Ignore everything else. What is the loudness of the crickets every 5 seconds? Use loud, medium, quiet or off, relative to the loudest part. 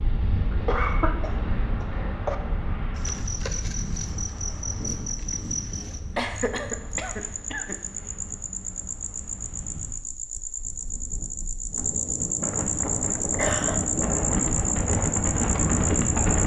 medium, medium, loud, loud.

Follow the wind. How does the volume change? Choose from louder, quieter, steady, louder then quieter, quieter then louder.
quieter then louder.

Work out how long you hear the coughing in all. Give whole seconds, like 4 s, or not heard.
5 s.